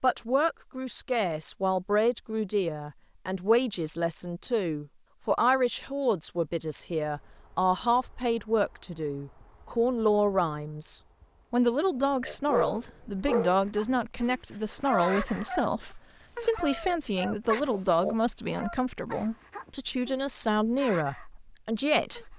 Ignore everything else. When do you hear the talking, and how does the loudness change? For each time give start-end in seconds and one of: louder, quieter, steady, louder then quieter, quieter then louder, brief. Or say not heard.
0.0-22.3 steady.